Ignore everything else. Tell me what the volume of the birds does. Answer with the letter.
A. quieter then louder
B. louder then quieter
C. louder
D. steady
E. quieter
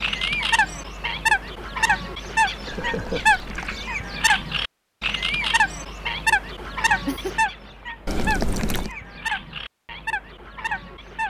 E.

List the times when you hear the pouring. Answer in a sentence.
The pouring can be heard from 2.7 to 3.9 s and from 8.1 to 8.9 s.